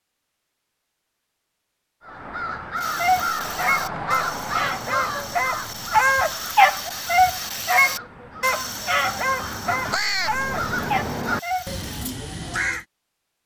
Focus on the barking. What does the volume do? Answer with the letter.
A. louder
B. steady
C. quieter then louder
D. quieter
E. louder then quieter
E.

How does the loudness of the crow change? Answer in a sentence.
The loudness of the crow goes down, then up.